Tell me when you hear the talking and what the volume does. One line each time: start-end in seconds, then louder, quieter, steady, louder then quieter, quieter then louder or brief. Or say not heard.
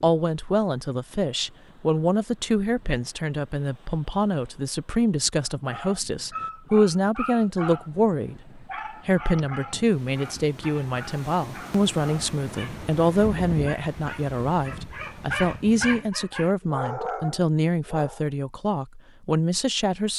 0.0-20.1 steady.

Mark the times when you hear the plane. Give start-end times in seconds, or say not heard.
not heard.